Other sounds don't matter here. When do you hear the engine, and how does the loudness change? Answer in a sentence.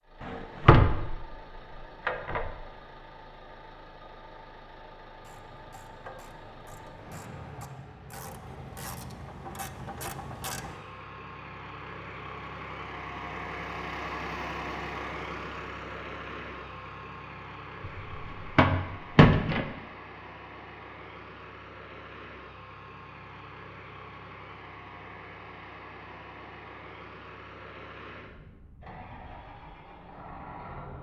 You can hear the engine from 0.0 to 30.9 s, getting louder then quieter.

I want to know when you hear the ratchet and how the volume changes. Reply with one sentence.
You can hear the ratchet from 5.2 to 10.8 s, getting louder.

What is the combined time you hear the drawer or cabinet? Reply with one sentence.
You can hear the drawer or cabinet for 3 seconds altogether.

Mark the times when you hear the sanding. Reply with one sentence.
You can't hear the sanding here.